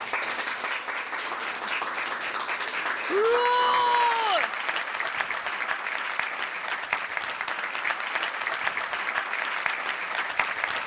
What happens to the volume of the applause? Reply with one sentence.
The loudness of the applause stays about the same.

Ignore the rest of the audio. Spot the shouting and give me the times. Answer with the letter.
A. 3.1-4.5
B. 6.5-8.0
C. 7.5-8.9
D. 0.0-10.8
A.